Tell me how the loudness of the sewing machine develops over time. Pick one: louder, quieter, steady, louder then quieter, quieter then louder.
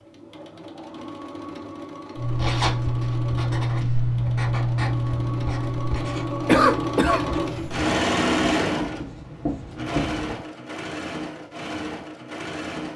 louder then quieter.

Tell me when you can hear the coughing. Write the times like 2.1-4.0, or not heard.
6.5-7.7.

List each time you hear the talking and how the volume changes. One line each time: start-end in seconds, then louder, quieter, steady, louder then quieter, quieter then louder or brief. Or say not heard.
not heard.